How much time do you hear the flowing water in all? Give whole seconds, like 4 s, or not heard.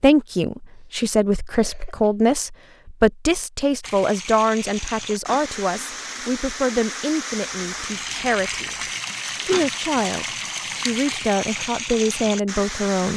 9 s.